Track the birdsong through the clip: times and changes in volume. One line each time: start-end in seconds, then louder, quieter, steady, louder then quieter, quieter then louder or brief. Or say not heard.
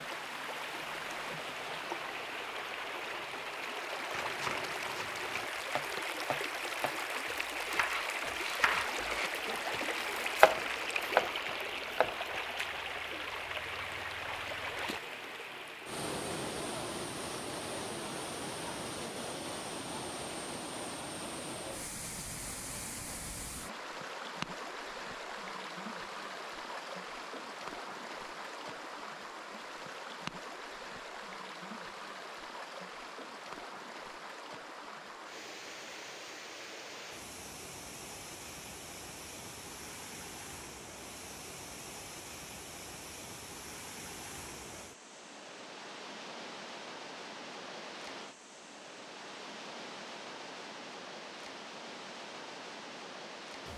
not heard.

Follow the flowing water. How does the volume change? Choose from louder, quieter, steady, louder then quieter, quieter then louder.
quieter.